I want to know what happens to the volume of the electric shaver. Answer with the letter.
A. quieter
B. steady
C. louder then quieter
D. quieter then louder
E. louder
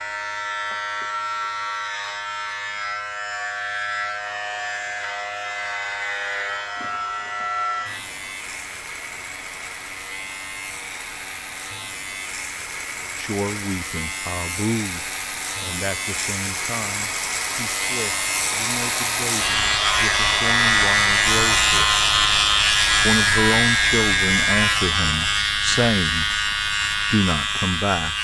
E.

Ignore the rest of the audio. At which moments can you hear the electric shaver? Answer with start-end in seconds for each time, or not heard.
0.0-28.2.